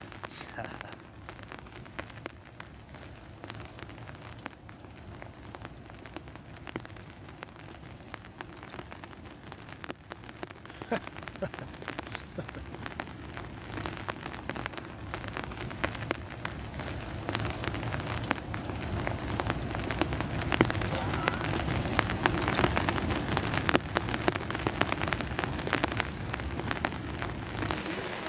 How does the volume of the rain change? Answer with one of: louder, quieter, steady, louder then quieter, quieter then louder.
louder.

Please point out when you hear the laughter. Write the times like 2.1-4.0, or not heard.
0.3-0.9, 10.7-12.6, 20.8-21.5.